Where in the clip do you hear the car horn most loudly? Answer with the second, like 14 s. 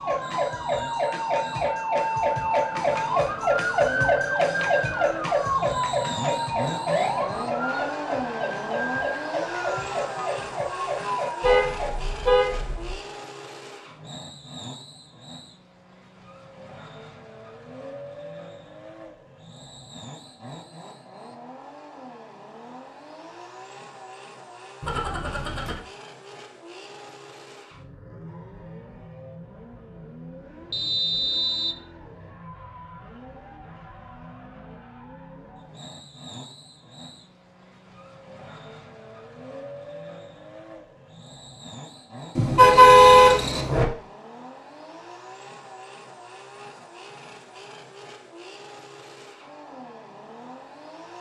43 s.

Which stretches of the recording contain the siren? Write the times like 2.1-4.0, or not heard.
0.0-11.9.